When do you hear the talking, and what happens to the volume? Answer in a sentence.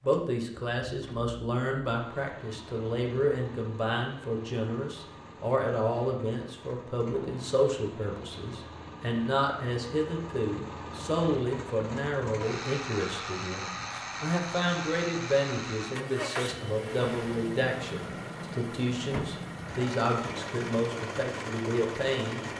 You can hear the talking from 0.0 to 22.5 s, at a steady volume.